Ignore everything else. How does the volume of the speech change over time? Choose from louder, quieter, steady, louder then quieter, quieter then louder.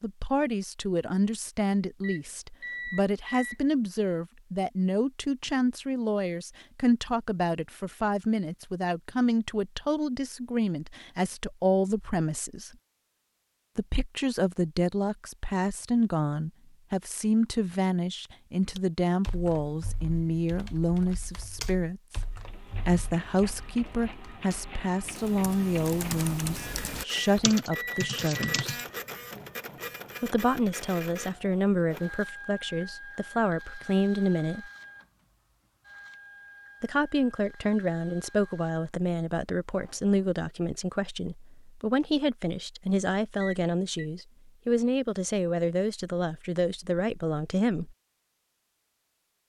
steady.